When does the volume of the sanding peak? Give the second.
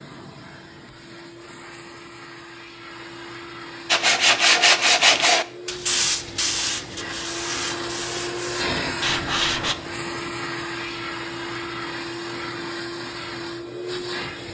5 s.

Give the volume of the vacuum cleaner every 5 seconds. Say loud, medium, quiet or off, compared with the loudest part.
medium, loud, loud.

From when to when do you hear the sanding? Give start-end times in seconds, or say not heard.
3.9-9.8.